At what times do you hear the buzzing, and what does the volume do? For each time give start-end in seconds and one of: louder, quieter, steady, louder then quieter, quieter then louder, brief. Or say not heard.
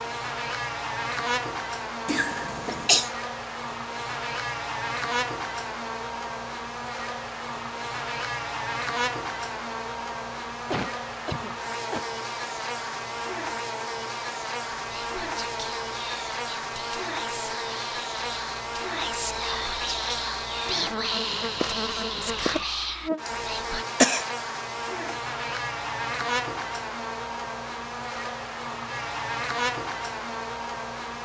0.0-31.1 steady.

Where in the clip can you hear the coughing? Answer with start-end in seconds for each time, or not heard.
2.0-3.1, 10.7-12.1, 23.2-24.2.